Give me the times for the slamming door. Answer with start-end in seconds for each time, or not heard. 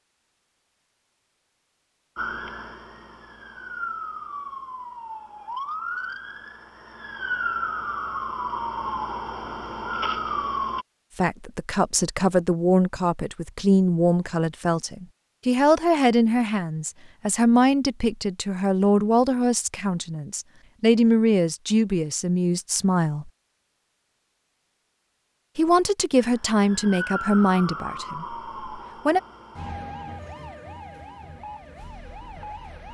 not heard.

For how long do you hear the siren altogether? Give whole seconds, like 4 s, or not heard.
15 s.